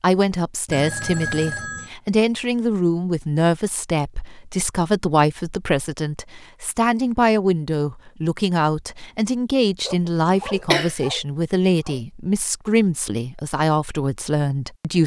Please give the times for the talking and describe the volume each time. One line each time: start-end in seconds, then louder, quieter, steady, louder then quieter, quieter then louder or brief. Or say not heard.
0.0-15.0 steady.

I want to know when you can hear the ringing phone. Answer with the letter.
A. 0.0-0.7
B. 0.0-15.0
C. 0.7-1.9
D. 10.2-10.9
C.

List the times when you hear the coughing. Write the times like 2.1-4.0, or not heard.
10.2-10.9.